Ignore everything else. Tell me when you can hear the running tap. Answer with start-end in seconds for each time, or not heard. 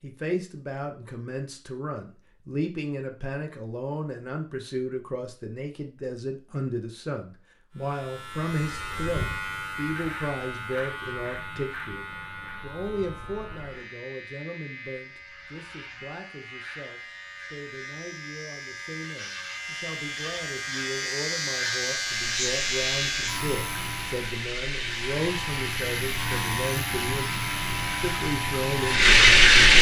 22.1-29.7.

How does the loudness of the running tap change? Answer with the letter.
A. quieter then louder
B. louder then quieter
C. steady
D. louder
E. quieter
D.